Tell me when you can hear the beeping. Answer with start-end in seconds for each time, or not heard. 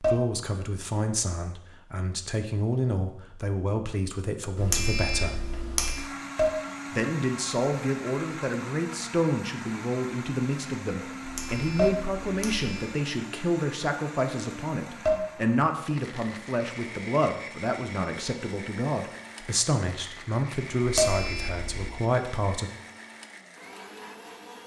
4.5-6.0, 11.2-12.9, 20.9-21.9.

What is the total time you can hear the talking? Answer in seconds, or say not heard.
21 s.